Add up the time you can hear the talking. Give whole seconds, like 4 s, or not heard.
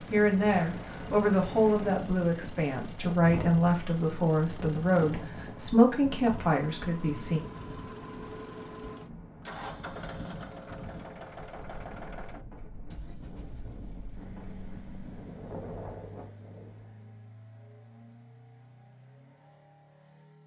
7 s.